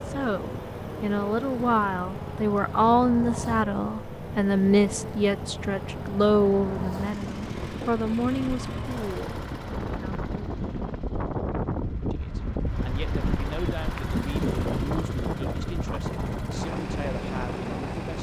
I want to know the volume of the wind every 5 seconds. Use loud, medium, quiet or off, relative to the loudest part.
medium, medium, loud, loud.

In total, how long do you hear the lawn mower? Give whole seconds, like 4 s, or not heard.
18 s.